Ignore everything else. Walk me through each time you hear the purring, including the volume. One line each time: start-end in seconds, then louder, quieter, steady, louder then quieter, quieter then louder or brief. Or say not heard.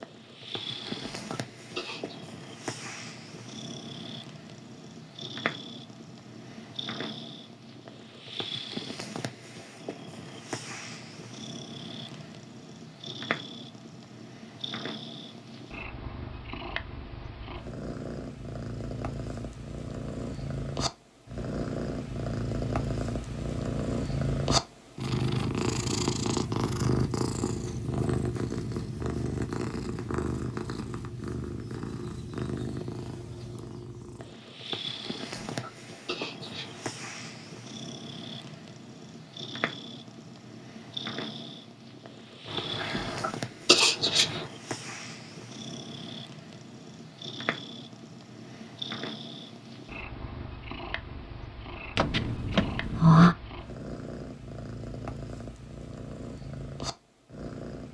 0.0-57.8 louder then quieter.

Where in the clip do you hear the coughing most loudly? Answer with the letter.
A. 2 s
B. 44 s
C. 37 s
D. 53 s
B.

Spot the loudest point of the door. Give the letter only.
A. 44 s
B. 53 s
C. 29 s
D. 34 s
B.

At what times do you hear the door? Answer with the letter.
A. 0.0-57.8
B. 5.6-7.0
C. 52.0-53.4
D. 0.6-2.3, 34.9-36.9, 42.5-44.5
C.